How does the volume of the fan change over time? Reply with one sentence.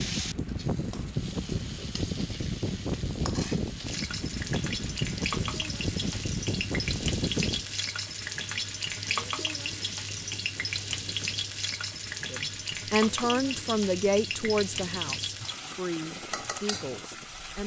The volume of the fan goes down.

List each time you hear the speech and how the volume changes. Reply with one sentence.
The speech can be heard from 12.3 to 17.6 s, getting quieter.